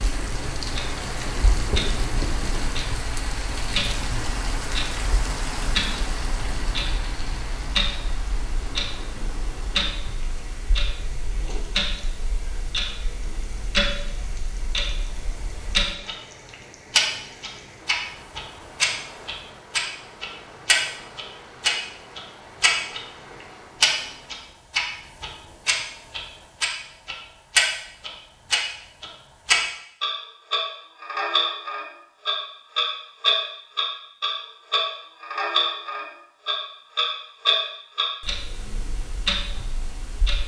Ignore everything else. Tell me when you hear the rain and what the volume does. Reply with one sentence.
The rain can be heard from 0.0 to 24.6 s, getting quieter.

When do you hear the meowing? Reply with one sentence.
The meowing can't be heard in this clip.